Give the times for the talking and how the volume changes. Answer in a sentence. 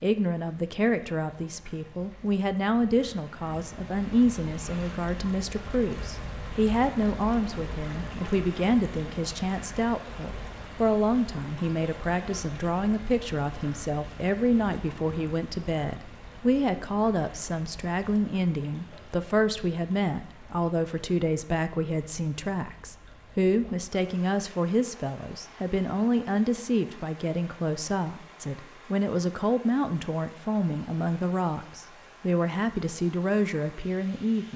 The talking can be heard from 0.0 to 34.5 s, at a steady volume.